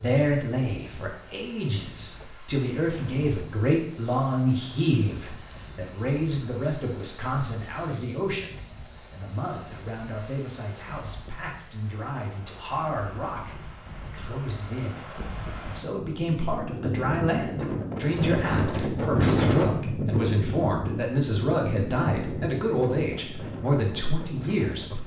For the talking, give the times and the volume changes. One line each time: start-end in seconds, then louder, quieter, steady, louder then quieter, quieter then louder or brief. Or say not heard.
0.0-25.0 quieter then louder.